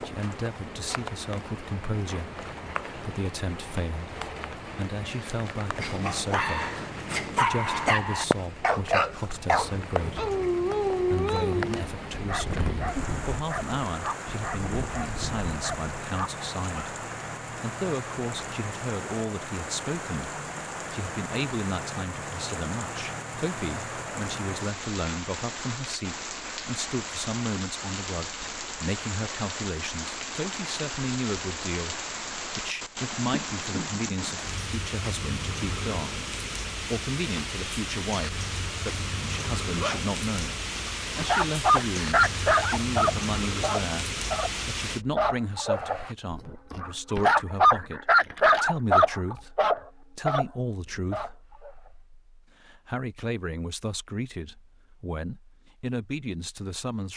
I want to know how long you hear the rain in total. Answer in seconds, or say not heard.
45 s.